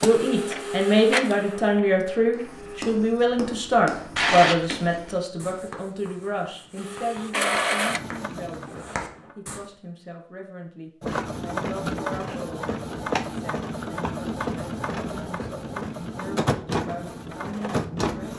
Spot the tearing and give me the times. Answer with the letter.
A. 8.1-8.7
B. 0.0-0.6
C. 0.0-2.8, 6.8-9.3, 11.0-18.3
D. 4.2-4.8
D.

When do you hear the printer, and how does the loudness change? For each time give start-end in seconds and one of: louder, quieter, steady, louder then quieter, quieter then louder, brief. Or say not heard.
0.0-2.8 brief
6.8-9.3 brief
11.0-18.3 steady.